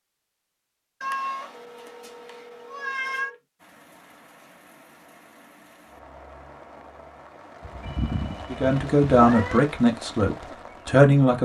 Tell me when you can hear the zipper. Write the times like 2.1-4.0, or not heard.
not heard.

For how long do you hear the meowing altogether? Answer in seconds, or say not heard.
4 s.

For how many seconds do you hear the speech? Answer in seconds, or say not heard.
3 s.